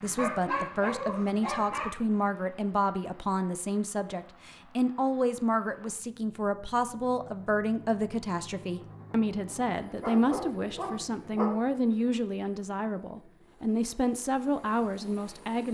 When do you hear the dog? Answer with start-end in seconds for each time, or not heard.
0.1-1.9, 10.0-11.4.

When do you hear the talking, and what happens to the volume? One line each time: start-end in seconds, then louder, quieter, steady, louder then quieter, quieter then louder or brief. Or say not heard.
0.0-15.6 steady.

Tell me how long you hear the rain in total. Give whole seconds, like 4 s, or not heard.
not heard.